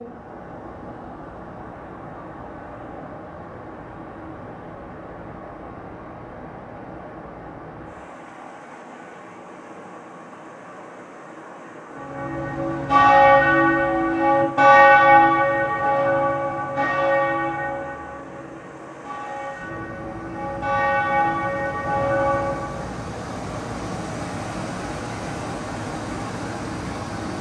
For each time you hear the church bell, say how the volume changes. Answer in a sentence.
The church bell can be heard from 11.9 to 22.8 s, getting quieter then louder.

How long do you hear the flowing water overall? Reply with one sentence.
The flowing water can be heard for 27 seconds in total.